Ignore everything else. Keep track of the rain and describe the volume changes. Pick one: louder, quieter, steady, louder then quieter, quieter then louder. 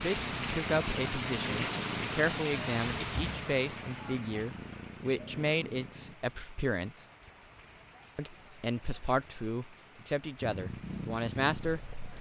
quieter.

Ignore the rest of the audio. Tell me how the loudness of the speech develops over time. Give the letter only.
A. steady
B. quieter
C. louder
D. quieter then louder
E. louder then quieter
A.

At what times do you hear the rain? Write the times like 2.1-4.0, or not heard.
0.0-12.1.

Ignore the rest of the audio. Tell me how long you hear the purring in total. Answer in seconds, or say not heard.
8 s.